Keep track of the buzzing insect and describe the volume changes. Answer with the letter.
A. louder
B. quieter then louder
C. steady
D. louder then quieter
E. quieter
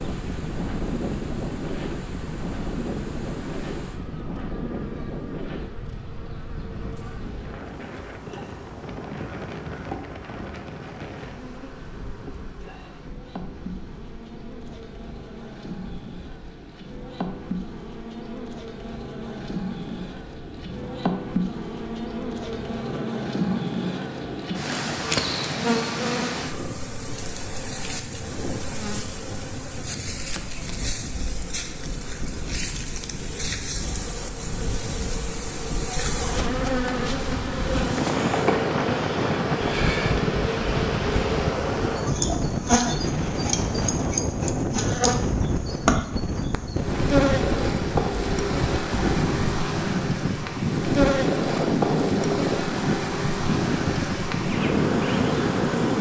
A.